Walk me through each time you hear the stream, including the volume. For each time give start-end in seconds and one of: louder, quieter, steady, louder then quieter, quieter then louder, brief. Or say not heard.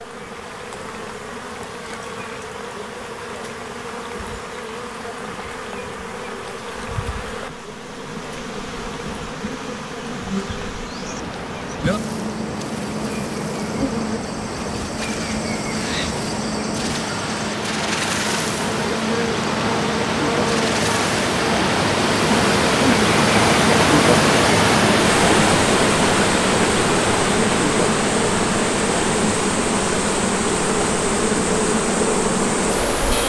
10.8-33.2 louder then quieter.